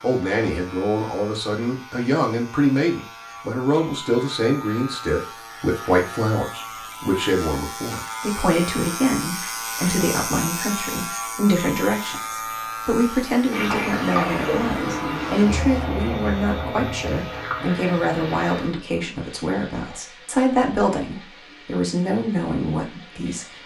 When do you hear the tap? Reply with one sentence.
You can hear the tap from 13.5 to 23.6 s.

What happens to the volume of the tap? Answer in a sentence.
The loudness of the tap goes down.